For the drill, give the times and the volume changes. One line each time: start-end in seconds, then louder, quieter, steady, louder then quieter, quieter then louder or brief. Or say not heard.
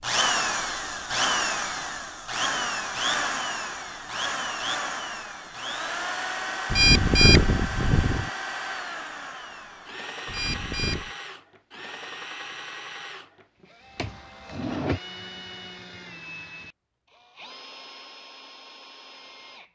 0.0-19.7 quieter.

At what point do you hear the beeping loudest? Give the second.
7 s.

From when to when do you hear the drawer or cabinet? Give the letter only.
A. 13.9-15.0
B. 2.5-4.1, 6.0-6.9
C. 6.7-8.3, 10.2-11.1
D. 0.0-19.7
A.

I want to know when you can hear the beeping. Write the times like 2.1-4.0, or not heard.
6.7-8.3, 10.2-11.1.